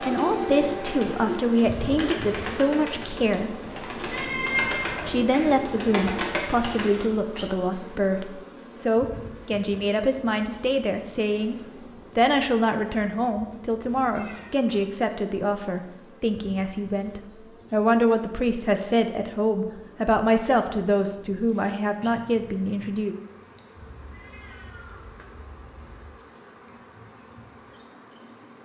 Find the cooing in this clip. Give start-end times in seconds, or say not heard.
0.0-7.1.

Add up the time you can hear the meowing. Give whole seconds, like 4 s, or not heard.
4 s.